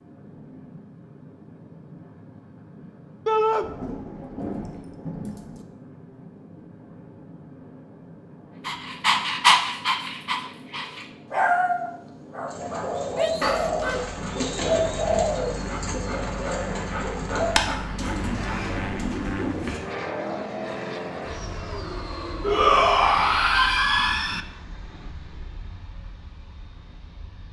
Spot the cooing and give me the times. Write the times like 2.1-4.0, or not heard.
12.5-19.8.